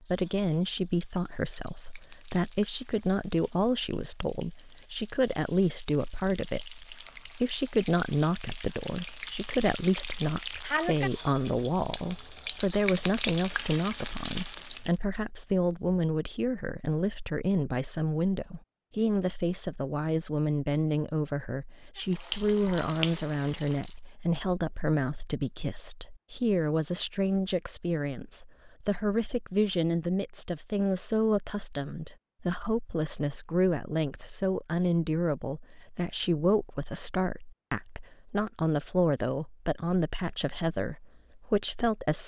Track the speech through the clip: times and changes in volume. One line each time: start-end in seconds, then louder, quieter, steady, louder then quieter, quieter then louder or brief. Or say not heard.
0.0-42.2 steady.